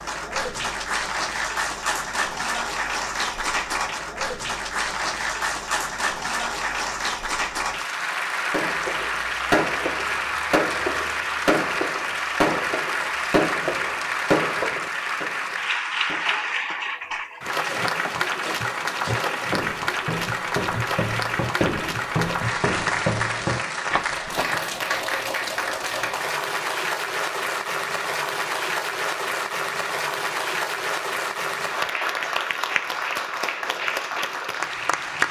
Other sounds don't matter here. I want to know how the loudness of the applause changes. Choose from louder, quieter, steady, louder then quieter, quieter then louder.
steady.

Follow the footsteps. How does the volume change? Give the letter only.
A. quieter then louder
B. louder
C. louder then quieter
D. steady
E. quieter
B.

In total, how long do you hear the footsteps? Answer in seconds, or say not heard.
7 s.